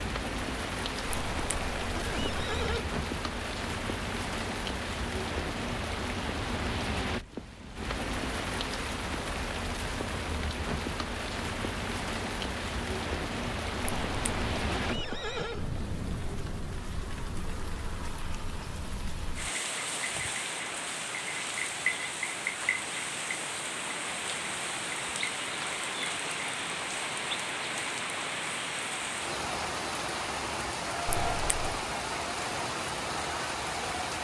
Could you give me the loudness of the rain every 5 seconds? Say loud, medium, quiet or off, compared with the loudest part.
loud, loud, loud, medium, loud, loud, loud.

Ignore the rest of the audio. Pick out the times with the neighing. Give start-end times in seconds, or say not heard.
1.1-2.9, 13.8-15.7, 31.1-31.9.